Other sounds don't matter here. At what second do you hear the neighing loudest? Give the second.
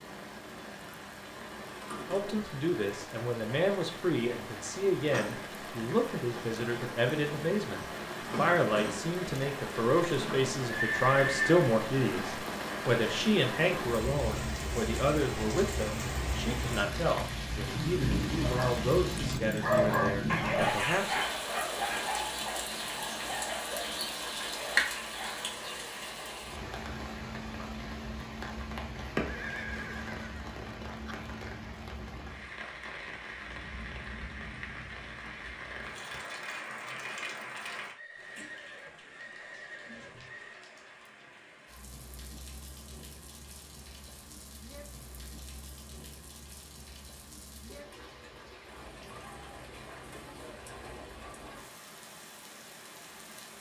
11 s.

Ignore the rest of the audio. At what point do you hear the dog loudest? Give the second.
20 s.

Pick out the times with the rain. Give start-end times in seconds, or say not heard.
0.0-53.5.